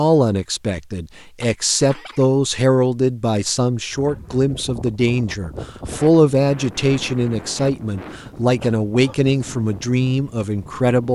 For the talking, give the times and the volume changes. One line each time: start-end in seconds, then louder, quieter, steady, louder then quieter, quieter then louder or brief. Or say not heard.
0.0-11.1 steady.